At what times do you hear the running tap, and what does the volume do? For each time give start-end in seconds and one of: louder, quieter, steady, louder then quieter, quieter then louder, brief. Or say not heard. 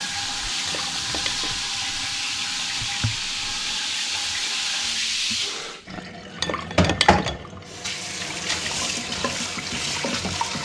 0.0-10.5 steady.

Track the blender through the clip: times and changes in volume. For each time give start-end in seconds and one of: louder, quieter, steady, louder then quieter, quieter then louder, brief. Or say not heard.
not heard.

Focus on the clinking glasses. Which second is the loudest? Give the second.
7 s.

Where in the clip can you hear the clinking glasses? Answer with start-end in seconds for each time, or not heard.
0.7-1.7, 6.4-7.5.